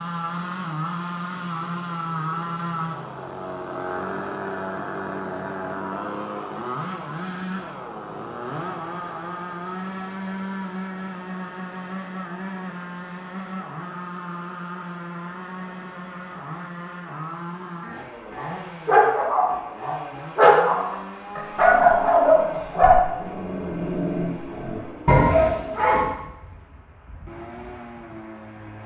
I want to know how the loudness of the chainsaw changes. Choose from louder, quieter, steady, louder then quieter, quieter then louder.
quieter.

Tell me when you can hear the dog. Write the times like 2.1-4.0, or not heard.
18.4-26.1.